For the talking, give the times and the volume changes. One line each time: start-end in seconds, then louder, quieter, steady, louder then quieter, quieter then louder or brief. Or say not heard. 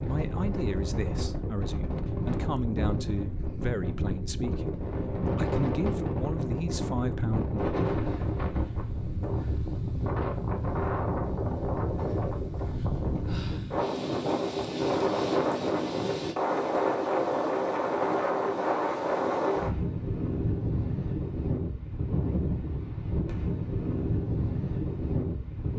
0.0-7.6 steady.